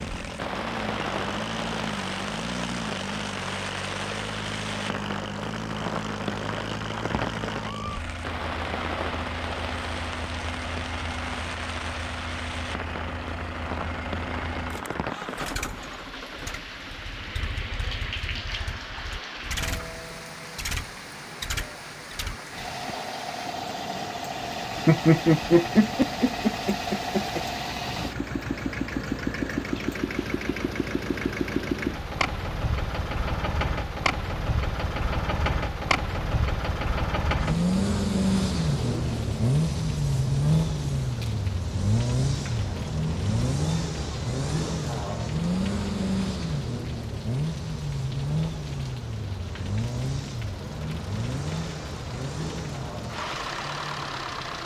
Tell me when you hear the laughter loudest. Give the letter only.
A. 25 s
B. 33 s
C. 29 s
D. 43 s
A.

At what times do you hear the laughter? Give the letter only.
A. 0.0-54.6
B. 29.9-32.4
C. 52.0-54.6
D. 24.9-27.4
D.